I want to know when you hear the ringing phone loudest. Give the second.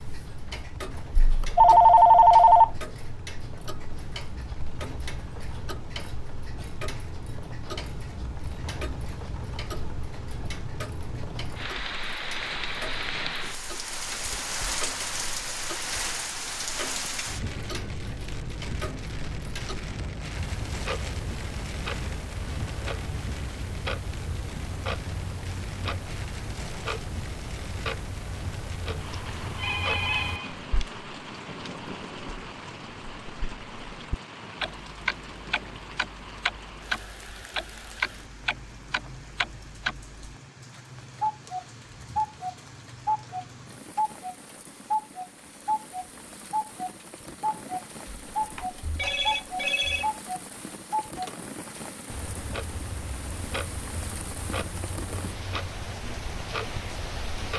2 s.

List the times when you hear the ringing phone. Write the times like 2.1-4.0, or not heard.
1.2-2.7, 29.1-30.9, 48.2-50.1.